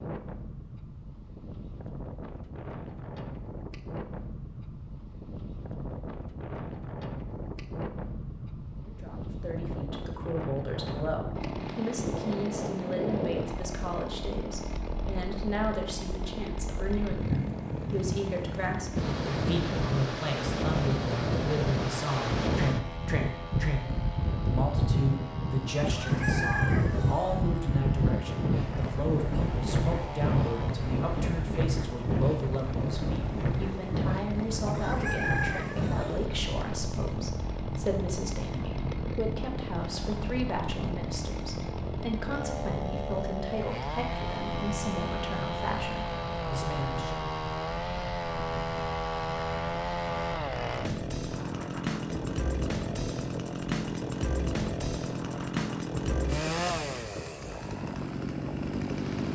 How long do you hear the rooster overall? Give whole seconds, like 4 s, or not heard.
3 s.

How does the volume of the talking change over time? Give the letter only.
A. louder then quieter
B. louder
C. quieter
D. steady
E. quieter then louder
D.